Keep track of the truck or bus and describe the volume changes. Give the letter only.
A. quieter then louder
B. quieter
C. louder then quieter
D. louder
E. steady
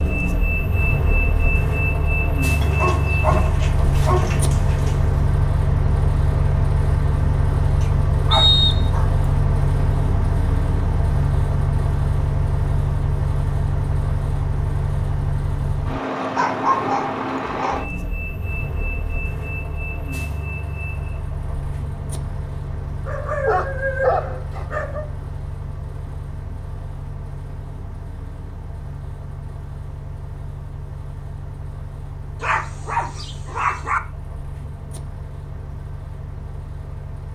B.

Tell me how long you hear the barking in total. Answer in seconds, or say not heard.
9 s.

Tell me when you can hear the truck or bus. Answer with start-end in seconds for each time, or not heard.
0.0-37.2.